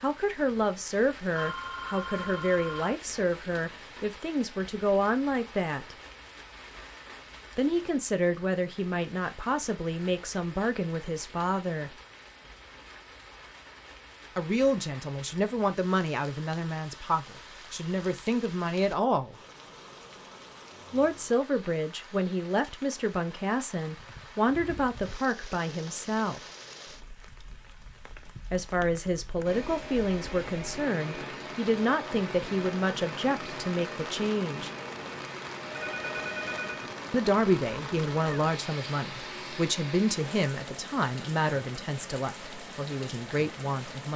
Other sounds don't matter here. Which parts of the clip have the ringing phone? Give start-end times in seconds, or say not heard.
1.4-3.0, 35.8-36.9.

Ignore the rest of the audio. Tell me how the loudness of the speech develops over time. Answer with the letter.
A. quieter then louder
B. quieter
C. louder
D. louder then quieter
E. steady
E.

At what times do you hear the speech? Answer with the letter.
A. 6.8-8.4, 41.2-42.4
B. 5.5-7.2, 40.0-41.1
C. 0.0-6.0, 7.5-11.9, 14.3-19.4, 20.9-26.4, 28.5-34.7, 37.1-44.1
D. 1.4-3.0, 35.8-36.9
C.